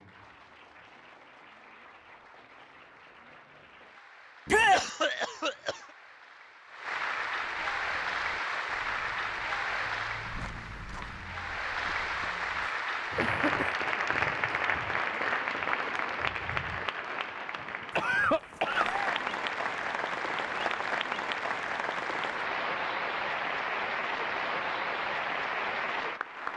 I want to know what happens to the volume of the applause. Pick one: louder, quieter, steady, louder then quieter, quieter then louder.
louder.